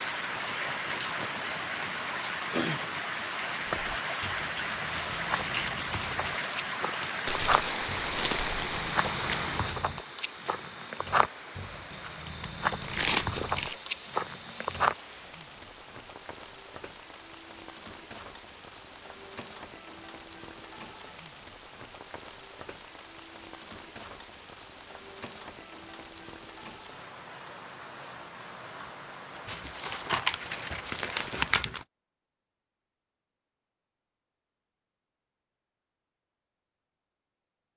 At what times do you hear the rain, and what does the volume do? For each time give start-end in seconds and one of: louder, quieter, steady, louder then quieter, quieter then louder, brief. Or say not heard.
0.0-31.7 quieter.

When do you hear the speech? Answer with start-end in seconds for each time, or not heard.
not heard.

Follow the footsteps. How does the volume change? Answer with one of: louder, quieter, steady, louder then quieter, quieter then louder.
louder.